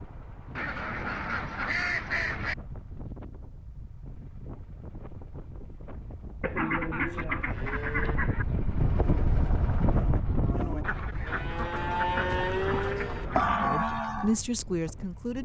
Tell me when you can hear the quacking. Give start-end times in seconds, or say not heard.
0.6-2.5, 6.4-8.4, 10.8-13.7.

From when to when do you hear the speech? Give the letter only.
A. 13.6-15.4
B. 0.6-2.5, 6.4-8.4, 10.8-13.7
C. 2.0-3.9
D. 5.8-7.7
A.